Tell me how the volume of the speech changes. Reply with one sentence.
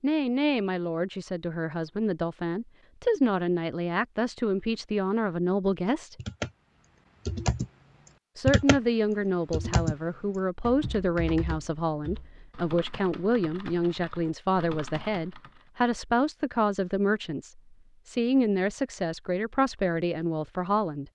The volume of the speech stays about the same.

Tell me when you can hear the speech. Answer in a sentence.
You can hear the speech from 0.0 to 6.2 s and from 8.3 to 21.1 s.